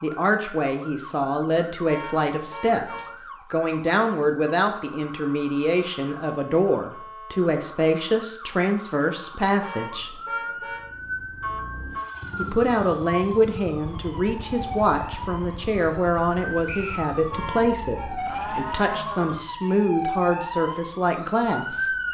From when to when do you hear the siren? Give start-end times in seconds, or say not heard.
0.0-22.0.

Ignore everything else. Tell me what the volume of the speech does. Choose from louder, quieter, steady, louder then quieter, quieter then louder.
steady.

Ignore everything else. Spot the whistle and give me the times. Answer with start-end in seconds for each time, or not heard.
16.6-17.1.